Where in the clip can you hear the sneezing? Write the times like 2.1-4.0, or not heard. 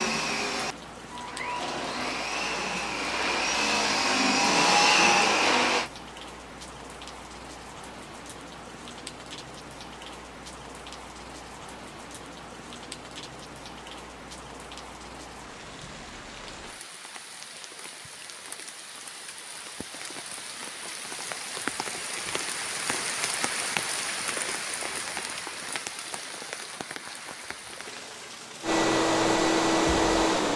not heard.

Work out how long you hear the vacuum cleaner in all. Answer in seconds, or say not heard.
8 s.